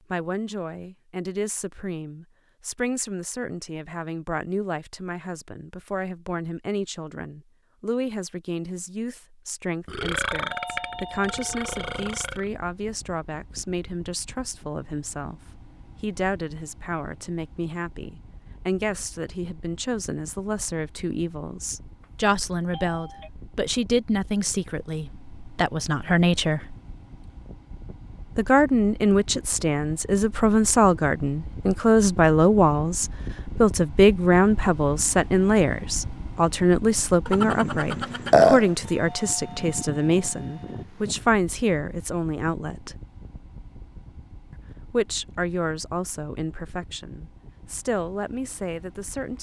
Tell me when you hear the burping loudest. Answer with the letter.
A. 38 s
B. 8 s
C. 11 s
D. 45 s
A.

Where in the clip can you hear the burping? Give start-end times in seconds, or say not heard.
9.8-12.4, 37.2-38.7.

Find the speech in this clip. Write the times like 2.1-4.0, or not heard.
0.1-26.8, 28.4-43.0, 44.5-49.3.